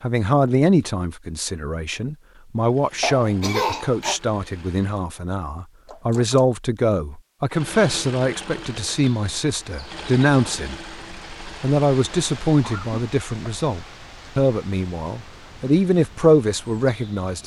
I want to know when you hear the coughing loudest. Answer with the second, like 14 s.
4 s.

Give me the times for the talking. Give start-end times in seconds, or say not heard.
0.0-10.8, 11.6-17.4.